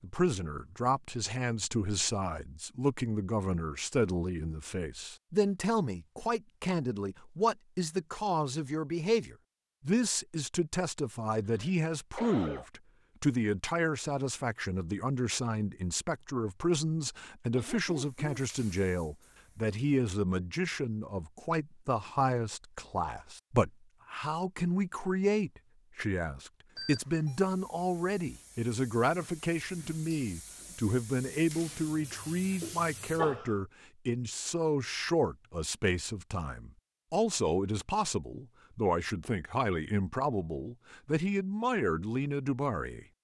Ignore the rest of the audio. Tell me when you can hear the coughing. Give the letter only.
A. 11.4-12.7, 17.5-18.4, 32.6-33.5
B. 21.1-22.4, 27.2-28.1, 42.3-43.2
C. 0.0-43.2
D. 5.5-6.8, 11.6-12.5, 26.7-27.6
A.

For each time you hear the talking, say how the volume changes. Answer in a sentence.
You can hear the talking from 0.0 to 43.2 s, at a steady volume.